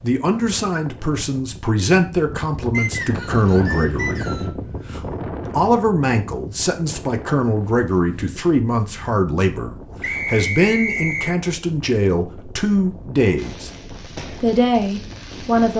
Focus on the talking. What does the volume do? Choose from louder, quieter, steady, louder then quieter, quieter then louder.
steady.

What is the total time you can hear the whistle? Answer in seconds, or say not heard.
3 s.